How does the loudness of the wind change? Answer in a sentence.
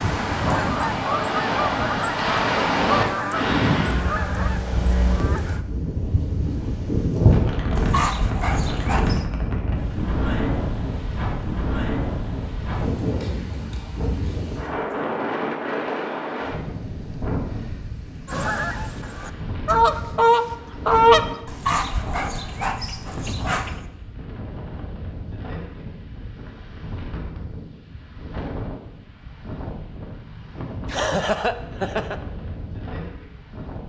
The volume of the wind goes down.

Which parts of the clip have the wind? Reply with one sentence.
The wind can be heard from 0.0 to 33.8 s.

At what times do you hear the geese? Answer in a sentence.
You can hear the geese from 0.0 to 5.7 s and from 18.2 to 21.2 s.